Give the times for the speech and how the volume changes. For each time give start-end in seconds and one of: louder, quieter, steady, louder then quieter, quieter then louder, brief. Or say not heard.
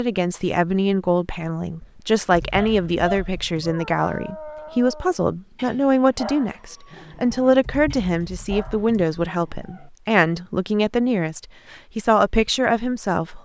0.0-13.4 steady.